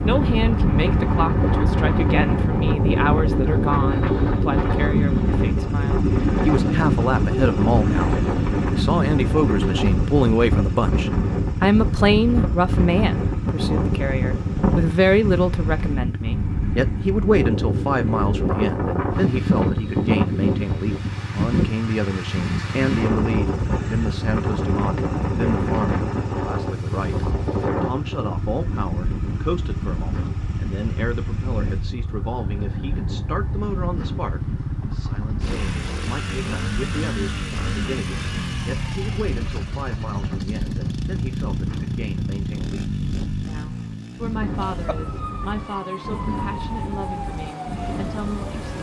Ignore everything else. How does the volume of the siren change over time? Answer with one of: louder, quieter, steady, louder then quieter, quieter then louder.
steady.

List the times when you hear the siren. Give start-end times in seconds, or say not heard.
44.5-48.7.